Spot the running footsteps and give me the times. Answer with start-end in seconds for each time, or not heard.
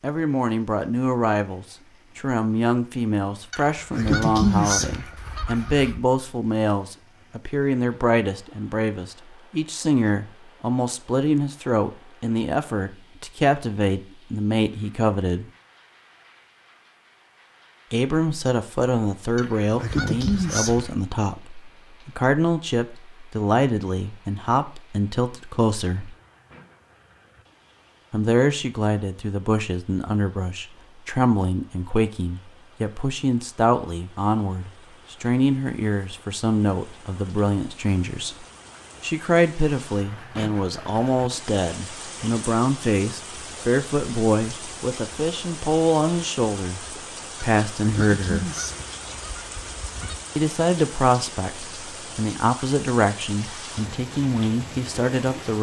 not heard.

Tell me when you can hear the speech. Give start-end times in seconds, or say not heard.
0.0-15.5, 17.9-26.1, 28.1-46.8, 47.4-48.5, 50.4-55.5.